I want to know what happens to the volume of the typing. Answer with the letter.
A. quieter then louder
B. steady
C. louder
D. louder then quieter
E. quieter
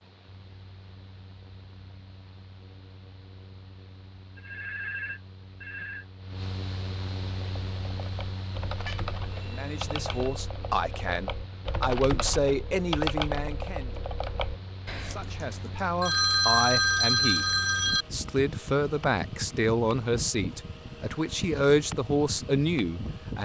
D.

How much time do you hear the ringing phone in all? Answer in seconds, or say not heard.
5 s.